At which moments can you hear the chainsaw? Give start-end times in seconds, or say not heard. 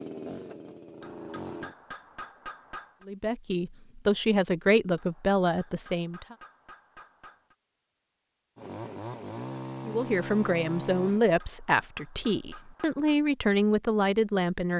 0.0-1.8, 8.6-11.2.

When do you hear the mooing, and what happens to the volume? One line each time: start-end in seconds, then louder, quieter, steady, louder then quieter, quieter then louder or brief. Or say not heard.
not heard.